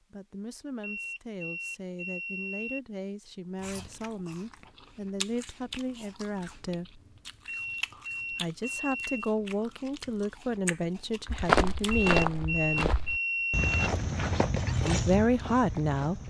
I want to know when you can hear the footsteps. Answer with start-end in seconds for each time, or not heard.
11.2-16.2.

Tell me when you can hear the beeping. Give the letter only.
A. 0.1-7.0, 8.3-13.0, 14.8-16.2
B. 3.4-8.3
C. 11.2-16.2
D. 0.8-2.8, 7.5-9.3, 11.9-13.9
D.